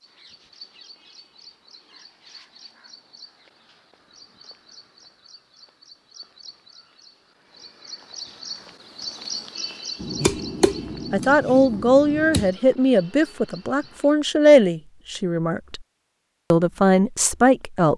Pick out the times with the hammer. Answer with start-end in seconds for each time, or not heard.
10.0-12.5.